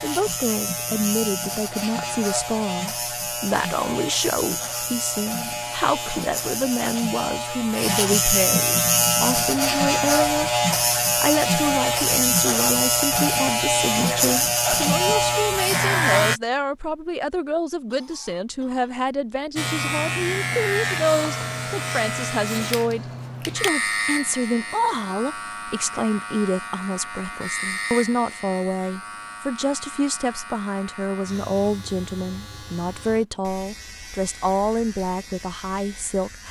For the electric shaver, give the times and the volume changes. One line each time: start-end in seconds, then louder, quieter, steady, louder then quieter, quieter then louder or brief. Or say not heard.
0.0-16.4 louder
19.6-36.4 quieter.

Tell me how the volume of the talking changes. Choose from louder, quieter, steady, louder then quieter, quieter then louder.
steady.